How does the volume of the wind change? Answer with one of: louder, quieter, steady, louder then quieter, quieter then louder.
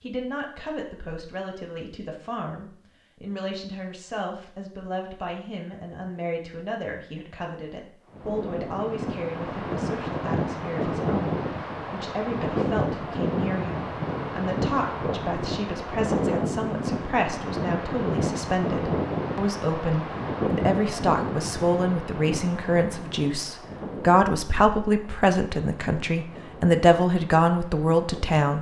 quieter.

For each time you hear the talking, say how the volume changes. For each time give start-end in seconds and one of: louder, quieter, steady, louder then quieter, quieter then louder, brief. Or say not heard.
0.0-28.5 louder.